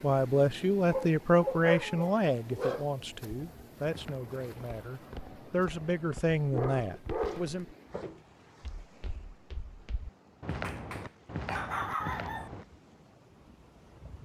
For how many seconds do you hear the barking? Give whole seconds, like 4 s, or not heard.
5 s.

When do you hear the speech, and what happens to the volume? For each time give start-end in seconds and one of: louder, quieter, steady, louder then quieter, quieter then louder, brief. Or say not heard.
0.0-7.7 quieter then louder.